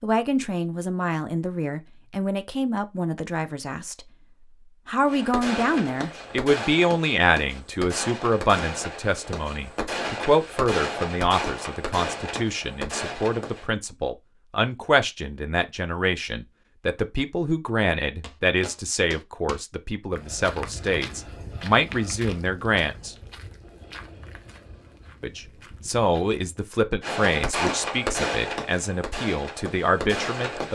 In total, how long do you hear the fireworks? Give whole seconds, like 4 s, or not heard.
12 s.